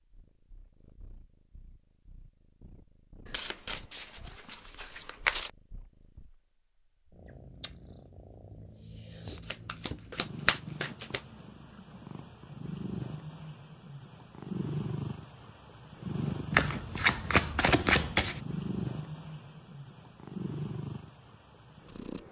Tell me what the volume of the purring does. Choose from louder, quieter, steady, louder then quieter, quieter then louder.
louder.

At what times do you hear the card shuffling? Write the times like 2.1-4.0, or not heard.
3.2-5.5, 9.4-11.2, 16.5-18.4.